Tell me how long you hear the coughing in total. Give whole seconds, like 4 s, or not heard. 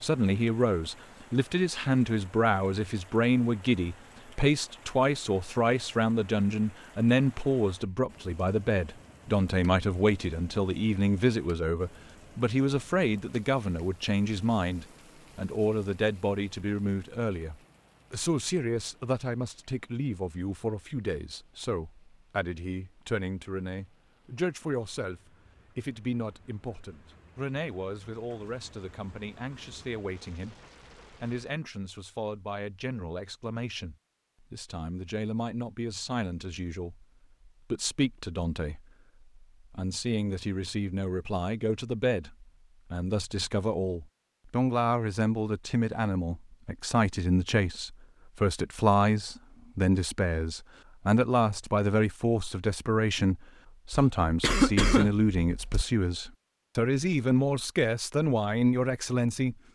2 s.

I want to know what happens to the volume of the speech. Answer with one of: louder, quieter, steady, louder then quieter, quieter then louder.
quieter then louder.